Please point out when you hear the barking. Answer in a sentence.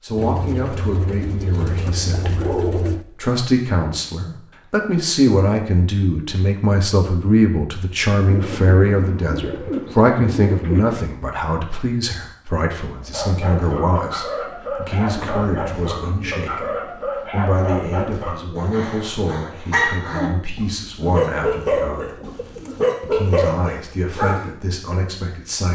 You can hear the barking from 12.9 to 24.4 s.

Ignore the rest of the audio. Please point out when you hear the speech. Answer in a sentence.
You can hear the speech from 0.0 to 22.1 s and from 23.0 to 25.7 s.